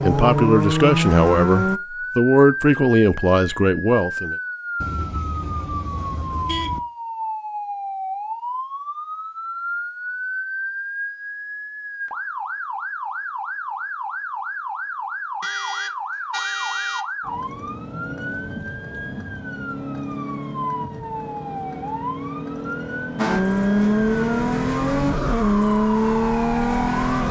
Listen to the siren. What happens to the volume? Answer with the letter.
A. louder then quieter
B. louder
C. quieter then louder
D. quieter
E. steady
E.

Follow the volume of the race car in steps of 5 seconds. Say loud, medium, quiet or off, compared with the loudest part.
loud, off, off, off, loud, loud.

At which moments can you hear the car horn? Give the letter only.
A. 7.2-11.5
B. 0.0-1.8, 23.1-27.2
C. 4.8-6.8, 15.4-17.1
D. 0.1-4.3
C.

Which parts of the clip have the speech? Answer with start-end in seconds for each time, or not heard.
0.1-4.3.